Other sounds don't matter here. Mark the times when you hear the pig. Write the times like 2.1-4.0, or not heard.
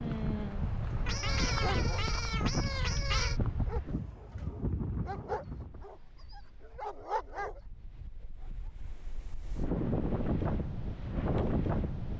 not heard.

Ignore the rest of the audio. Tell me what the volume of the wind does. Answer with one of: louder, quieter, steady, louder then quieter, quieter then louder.
quieter then louder.